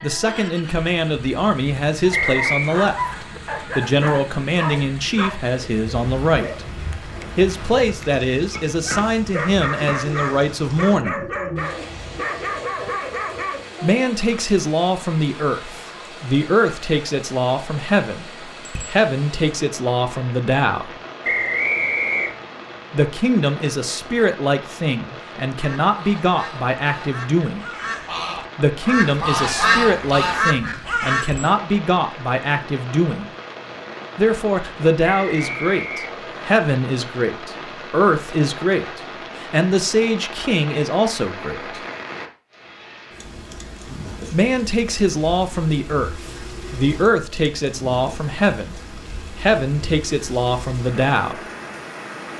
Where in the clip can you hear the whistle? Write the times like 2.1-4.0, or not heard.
2.1-2.8, 21.2-22.4, 35.2-36.5.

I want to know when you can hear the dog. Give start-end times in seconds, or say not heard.
2.1-13.7.